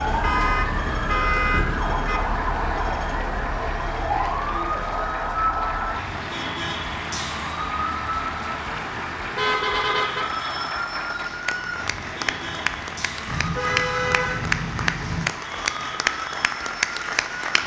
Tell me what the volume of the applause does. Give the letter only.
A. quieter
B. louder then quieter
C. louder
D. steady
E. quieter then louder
C.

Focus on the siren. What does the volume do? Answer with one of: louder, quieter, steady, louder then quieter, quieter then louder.
quieter.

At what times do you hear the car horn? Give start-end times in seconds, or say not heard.
0.2-2.2, 9.3-10.2, 13.2-15.3.